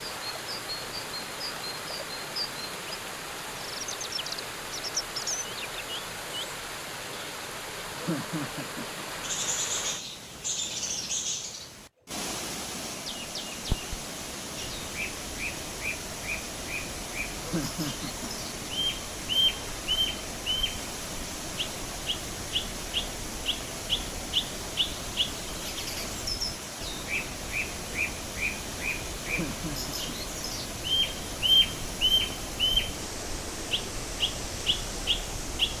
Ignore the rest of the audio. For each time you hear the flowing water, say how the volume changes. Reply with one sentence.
You can hear the flowing water from 0.0 to 35.7 s, at a steady volume.